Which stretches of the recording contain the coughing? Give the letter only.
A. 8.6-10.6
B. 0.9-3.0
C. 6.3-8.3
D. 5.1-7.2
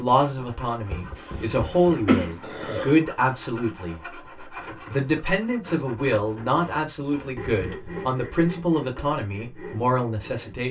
B.